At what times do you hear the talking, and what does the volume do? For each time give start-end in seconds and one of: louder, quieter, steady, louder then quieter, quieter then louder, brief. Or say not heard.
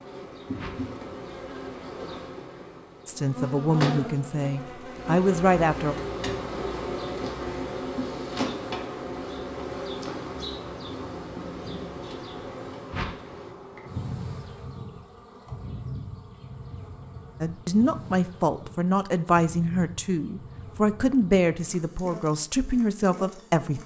3.0-6.0 brief
17.4-23.8 steady.